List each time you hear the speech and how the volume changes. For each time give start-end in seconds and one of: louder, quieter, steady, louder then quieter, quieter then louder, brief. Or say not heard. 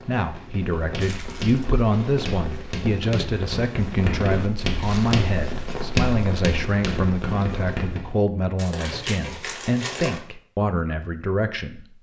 0.1-11.8 steady.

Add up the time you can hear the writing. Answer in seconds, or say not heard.
8 s.